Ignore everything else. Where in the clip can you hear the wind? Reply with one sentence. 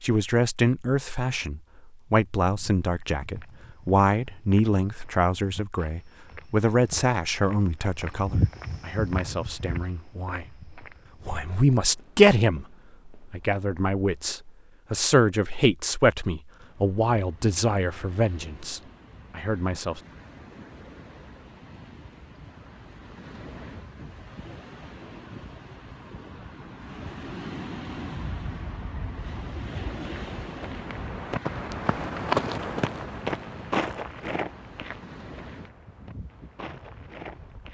You can hear the wind from 16.4 to 37.6 s.